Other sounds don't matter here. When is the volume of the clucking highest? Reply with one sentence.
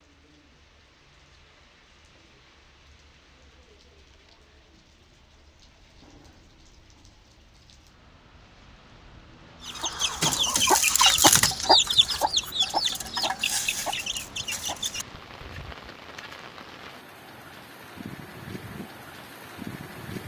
The loudest moment of the clucking is at 11 seconds.